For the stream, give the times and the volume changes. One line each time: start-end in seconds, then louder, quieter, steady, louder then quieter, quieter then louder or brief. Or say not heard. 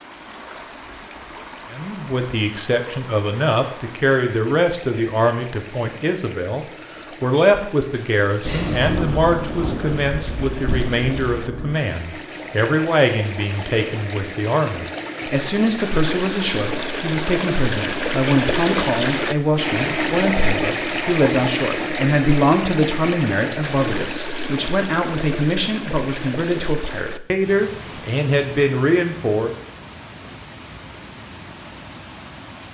0.0-32.6 louder then quieter.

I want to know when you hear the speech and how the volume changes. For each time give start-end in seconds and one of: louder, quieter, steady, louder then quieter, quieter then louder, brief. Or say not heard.
1.7-29.6 steady.